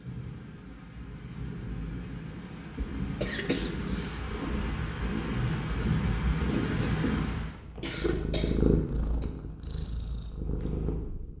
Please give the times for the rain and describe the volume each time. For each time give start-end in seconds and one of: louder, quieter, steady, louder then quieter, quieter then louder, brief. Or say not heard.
0.0-7.6 louder.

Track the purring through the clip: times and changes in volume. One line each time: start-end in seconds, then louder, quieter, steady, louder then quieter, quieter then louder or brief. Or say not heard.
2.8-11.3 louder then quieter.